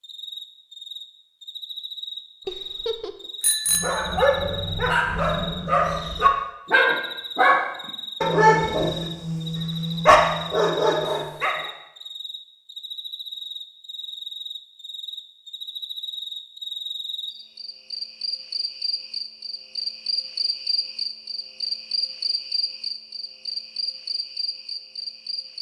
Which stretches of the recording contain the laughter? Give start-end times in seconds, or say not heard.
2.5-3.2.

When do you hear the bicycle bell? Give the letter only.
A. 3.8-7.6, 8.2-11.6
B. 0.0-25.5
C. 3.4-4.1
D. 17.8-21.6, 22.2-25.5
C.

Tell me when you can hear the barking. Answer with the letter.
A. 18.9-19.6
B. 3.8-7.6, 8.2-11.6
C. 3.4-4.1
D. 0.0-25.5
B.